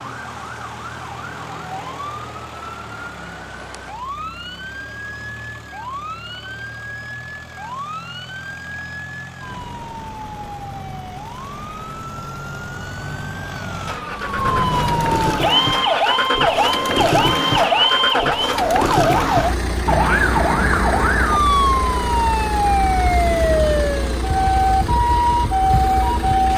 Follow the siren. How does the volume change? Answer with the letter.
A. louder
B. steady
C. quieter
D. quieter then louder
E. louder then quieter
A.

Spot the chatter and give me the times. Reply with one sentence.
The chatter can't be heard in this clip.